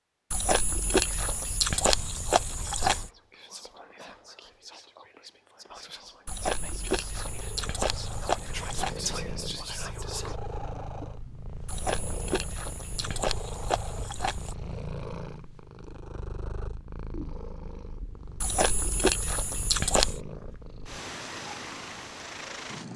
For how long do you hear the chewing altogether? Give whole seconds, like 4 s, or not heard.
10 s.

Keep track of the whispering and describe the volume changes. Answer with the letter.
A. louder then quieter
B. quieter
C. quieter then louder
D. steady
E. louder
E.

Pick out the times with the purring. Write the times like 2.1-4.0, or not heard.
6.9-22.9.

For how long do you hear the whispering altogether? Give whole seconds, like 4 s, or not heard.
9 s.